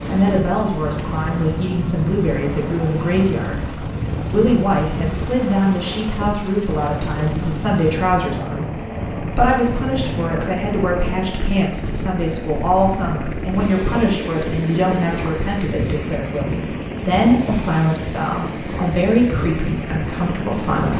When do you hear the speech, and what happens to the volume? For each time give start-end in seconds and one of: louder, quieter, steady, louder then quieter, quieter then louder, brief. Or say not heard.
0.0-20.9 steady.